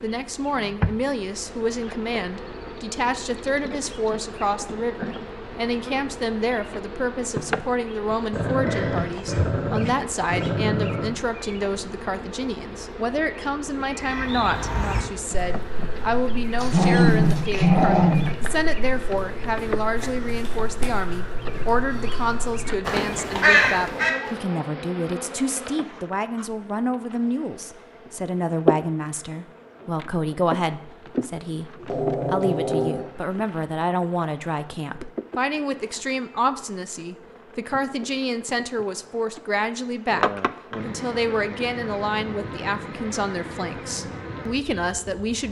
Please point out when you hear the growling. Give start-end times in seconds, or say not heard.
8.3-11.1, 16.6-18.2, 31.8-33.1.